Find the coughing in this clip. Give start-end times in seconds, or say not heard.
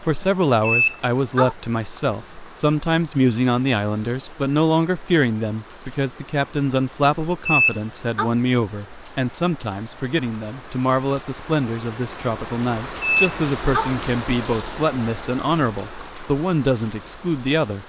not heard.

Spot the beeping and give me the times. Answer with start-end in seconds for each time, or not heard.
0.6-1.6, 7.5-8.3, 13.0-13.9.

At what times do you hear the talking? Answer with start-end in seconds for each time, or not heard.
0.0-17.8.